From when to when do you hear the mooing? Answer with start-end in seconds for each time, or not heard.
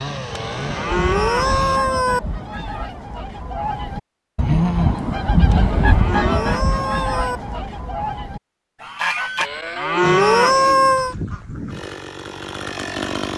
0.3-2.2, 5.5-7.4, 9.3-11.2.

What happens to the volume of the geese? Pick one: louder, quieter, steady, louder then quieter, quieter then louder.
louder then quieter.